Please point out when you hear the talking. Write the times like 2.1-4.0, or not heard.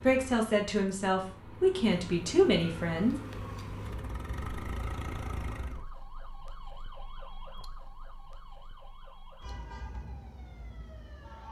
0.0-3.1.